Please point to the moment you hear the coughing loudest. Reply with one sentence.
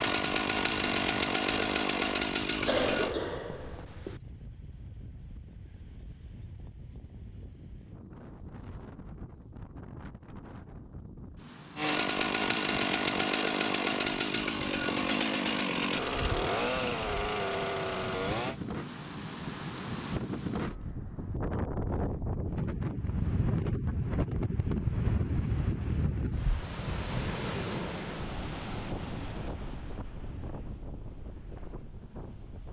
The volume of the coughing peaks at 3 seconds.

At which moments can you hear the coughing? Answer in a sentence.
The coughing can be heard from 2.6 to 4.2 s.